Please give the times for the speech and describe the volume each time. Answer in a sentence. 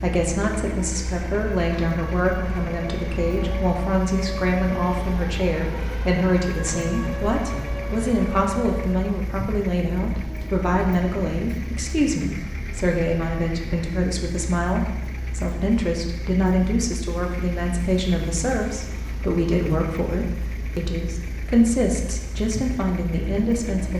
You can hear the speech from 0.0 to 23.9 s, at a steady volume.